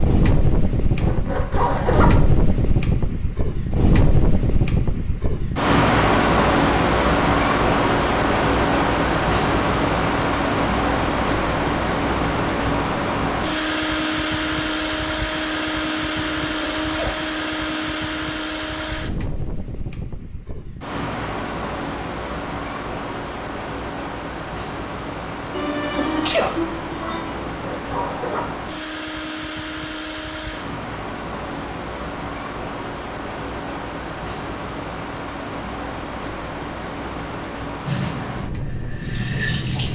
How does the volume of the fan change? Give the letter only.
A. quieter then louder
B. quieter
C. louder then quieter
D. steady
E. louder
B.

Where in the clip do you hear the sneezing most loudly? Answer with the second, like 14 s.
26 s.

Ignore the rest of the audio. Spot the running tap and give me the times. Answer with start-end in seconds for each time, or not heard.
37.9-39.9.